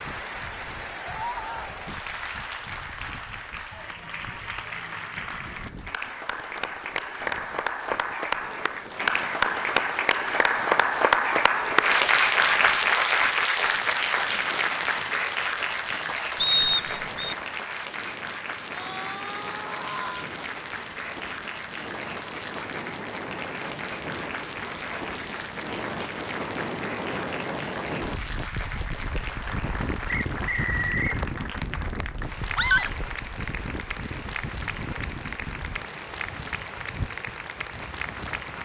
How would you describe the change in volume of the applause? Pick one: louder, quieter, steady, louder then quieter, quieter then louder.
louder then quieter.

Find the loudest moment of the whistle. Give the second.
17 s.